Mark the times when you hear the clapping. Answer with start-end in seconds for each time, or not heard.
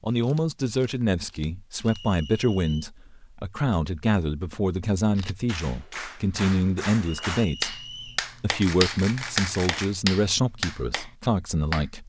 5.5-11.8.